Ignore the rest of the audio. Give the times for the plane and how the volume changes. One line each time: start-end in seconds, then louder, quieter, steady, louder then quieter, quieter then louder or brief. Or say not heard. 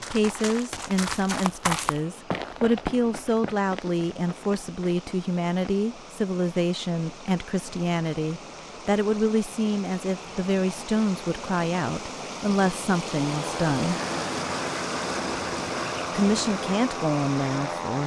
13.2-18.0 steady.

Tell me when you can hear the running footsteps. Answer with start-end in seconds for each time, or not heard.
0.0-5.9.